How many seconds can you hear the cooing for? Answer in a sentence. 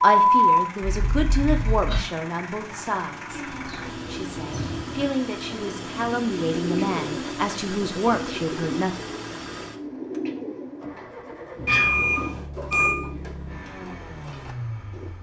The cooing can be heard for 12 seconds in total.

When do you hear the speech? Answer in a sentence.
You can hear the speech from 0.0 to 8.9 s.